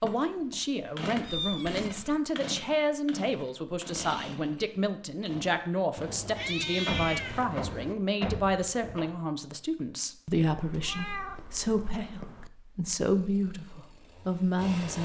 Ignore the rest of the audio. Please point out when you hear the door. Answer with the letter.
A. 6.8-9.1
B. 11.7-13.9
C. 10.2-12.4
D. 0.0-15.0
A.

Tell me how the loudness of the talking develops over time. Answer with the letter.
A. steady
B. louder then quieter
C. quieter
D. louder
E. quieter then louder
A.